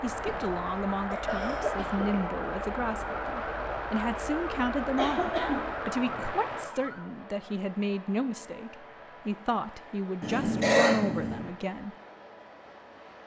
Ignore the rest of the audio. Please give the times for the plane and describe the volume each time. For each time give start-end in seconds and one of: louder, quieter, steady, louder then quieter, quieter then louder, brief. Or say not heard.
0.0-13.2 quieter.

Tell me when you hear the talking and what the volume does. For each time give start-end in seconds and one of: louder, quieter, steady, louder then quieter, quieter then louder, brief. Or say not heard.
0.0-11.9 steady.